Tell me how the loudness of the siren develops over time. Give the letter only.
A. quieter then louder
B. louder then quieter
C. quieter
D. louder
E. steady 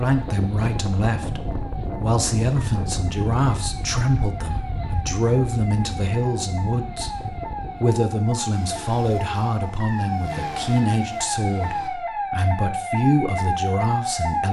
D.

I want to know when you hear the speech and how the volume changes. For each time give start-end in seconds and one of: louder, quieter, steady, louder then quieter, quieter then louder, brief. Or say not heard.
0.0-14.4 steady.